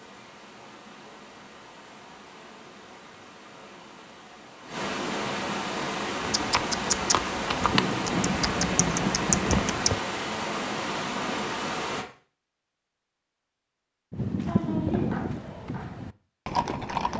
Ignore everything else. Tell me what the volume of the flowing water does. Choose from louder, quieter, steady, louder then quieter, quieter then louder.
louder.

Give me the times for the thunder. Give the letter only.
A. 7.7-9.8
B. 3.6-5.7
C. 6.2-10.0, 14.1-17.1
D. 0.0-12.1
A.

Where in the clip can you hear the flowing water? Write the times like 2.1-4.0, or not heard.
0.0-12.1.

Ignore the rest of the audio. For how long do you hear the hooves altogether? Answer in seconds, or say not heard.
7 s.